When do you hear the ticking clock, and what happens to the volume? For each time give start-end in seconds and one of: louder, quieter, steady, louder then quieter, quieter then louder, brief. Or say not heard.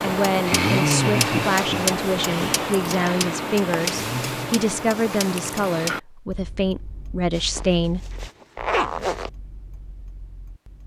0.0-10.8 quieter.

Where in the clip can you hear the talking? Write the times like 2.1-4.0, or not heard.
0.0-8.1.